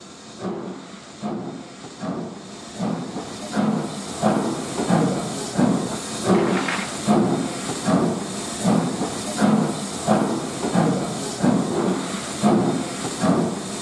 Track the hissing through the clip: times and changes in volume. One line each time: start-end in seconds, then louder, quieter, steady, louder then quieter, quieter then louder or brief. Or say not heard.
0.0-13.7 louder.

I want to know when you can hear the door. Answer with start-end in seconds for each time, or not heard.
6.3-7.0.